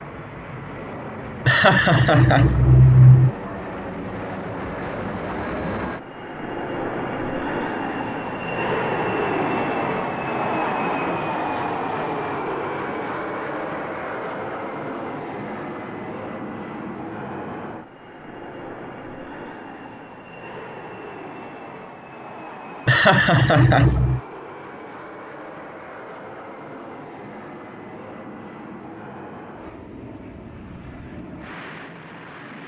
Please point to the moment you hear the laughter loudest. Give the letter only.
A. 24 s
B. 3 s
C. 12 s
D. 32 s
B.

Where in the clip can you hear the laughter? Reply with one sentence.
You can hear the laughter from 1.4 to 3.3 s and from 22.9 to 24.2 s.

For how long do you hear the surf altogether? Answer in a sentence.
You can't hear the surf here.